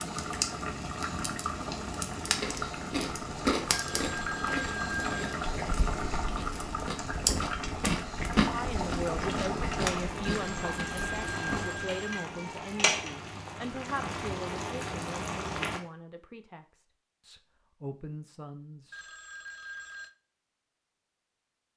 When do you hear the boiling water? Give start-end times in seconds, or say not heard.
0.0-15.8.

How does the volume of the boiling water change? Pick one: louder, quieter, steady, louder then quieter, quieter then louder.
steady.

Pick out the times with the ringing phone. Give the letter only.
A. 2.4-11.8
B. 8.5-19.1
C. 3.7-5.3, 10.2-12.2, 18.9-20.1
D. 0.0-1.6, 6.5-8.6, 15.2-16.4
C.